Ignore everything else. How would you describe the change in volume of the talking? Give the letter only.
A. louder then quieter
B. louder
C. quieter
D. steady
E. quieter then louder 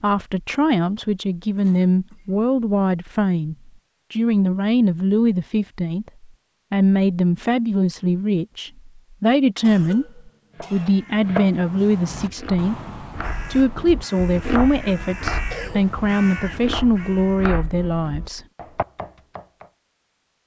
D.